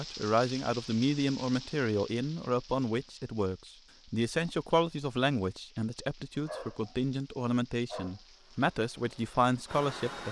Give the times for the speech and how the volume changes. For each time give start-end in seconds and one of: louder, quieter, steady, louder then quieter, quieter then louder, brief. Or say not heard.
0.0-10.2 steady.